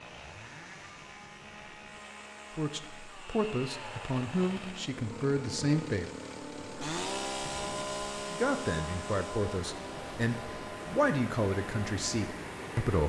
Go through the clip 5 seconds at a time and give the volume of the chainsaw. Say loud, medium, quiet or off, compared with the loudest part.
medium, loud, medium.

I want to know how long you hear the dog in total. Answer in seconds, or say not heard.
not heard.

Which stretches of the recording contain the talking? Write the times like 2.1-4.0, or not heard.
2.5-6.1, 8.3-13.0.